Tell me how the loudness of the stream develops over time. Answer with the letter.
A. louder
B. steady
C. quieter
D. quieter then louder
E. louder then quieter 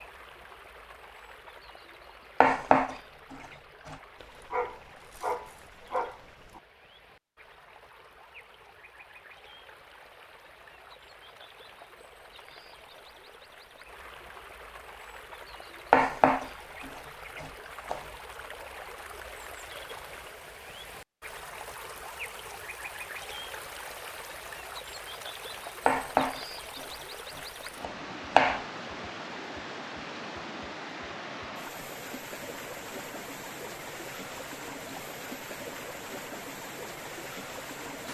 A.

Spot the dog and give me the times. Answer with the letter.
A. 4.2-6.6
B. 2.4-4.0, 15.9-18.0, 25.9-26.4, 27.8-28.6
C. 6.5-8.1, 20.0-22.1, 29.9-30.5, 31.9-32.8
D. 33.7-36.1
A.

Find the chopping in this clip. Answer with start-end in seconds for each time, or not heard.
2.4-4.0, 15.9-18.0, 25.9-26.4, 27.8-28.6.